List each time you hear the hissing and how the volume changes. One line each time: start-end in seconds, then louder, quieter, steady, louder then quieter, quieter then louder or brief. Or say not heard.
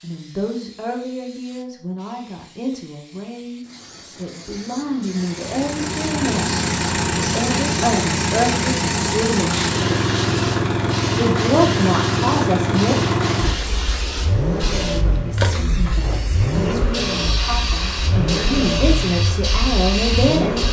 0.0-20.6 louder.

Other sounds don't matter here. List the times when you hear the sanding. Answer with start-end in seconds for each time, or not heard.
not heard.